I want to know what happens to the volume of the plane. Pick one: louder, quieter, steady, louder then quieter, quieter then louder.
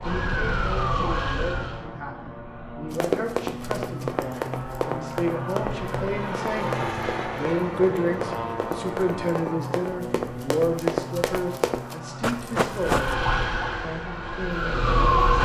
louder then quieter.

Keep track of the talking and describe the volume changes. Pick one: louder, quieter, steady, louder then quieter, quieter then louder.
louder then quieter.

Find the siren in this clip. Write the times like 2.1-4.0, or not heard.
0.0-1.9, 12.7-15.3.